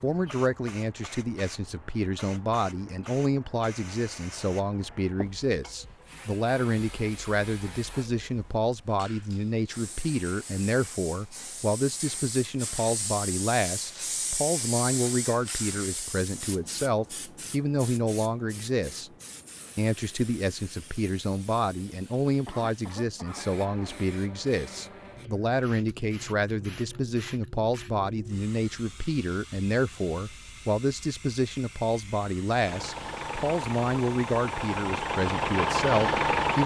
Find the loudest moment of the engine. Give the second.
36 s.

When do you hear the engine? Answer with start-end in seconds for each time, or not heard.
32.6-36.6.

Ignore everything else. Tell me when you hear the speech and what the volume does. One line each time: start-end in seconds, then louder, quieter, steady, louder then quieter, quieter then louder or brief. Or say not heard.
0.0-19.1 steady
19.8-36.6 steady.